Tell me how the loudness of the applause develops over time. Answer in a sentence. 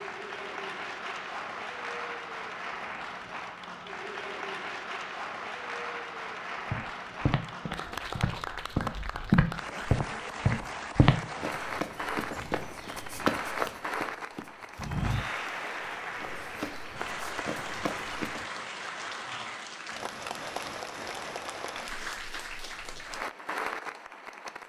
The loudness of the applause stays about the same.